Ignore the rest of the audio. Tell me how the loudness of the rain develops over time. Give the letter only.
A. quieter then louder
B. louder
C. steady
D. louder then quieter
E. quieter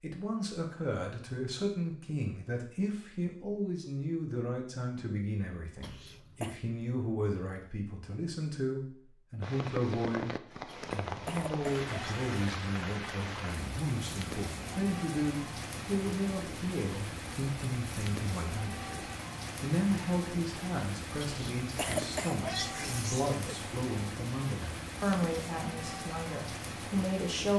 C.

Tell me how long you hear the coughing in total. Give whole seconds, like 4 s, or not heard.
5 s.